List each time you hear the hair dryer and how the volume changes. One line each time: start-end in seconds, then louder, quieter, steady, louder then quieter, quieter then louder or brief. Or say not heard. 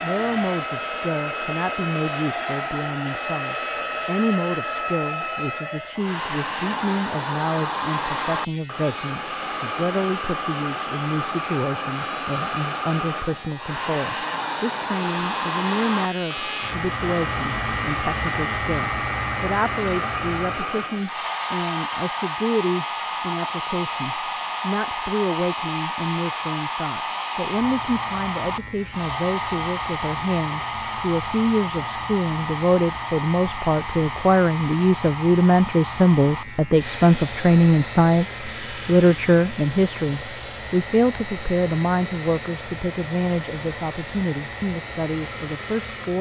0.0-46.1 quieter.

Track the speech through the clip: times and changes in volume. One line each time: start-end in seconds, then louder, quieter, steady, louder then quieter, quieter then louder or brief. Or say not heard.
0.0-46.1 louder.